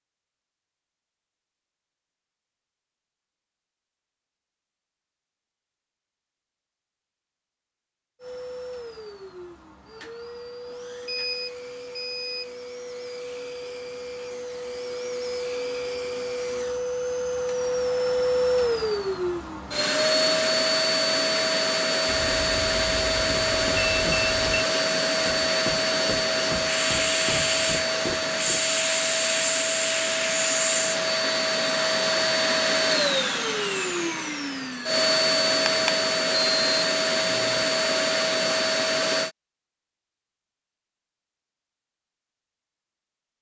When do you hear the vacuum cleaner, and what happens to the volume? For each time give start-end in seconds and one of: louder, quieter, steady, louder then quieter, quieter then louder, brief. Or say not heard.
8.2-39.3 louder.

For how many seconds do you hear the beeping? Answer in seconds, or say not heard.
5 s.